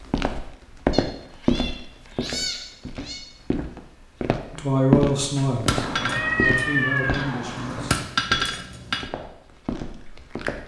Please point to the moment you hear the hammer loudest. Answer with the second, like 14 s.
8 s.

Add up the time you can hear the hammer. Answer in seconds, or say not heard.
4 s.